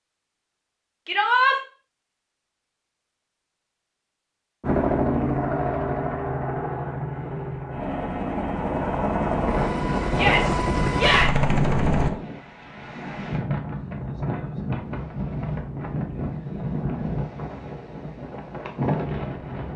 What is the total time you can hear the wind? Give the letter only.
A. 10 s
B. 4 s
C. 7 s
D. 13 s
A.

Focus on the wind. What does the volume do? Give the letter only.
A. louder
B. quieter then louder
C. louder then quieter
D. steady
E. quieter
D.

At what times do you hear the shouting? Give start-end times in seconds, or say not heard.
1.1-1.6, 10.1-11.3.